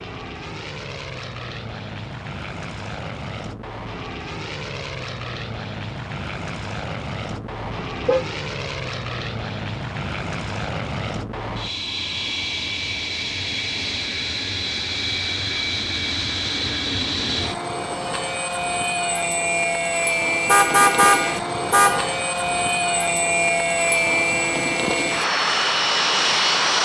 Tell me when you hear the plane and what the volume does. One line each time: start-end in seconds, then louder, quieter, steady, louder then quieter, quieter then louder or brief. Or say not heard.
0.0-26.8 louder.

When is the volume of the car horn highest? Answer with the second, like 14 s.
21 s.